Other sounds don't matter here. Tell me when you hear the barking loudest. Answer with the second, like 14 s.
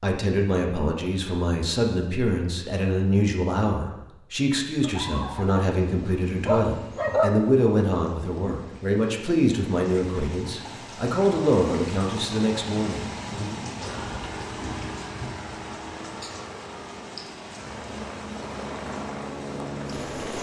7 s.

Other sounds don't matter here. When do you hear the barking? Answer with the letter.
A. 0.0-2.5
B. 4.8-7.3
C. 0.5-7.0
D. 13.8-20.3
B.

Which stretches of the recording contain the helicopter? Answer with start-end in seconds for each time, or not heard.
13.8-20.3.